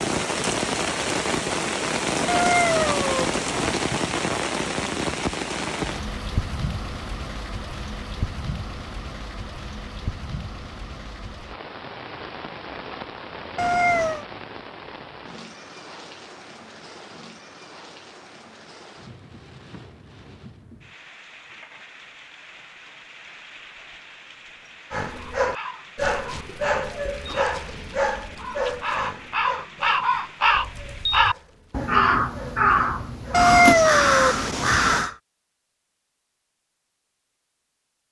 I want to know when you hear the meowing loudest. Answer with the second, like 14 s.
34 s.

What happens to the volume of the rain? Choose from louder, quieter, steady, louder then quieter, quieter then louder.
quieter.